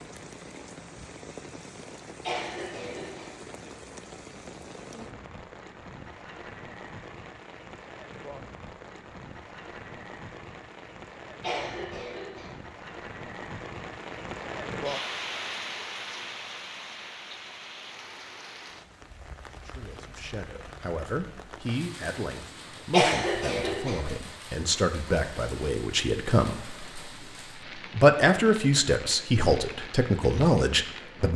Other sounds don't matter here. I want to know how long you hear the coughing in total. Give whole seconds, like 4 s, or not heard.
3 s.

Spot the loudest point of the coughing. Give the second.
23 s.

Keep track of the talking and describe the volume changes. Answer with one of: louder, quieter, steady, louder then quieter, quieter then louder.
louder.